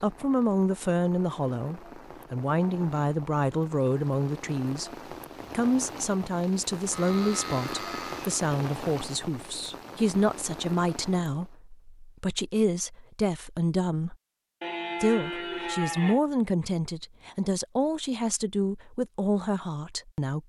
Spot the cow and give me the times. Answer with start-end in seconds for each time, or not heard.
6.9-8.4, 14.6-16.2.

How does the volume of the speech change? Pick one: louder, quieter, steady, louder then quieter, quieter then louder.
steady.